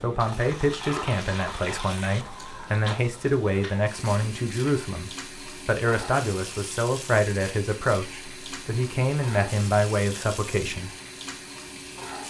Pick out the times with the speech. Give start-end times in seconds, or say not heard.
0.0-10.9.